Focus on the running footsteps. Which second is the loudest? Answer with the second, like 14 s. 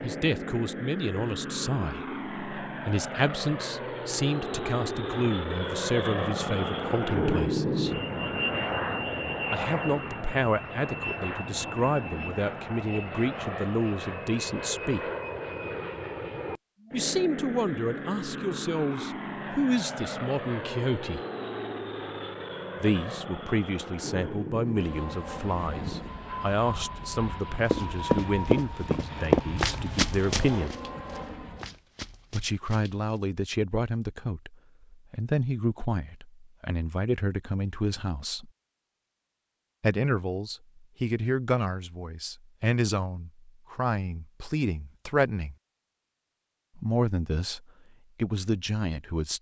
29 s.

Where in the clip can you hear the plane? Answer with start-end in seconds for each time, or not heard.
0.0-31.8.